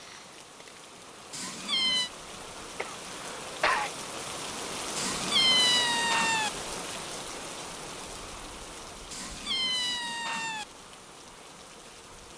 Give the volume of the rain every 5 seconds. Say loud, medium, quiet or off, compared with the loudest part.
loud, loud, medium.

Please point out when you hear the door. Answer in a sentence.
You can't hear the door here.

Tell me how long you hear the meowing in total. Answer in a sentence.
The meowing can be heard for 4 seconds in total.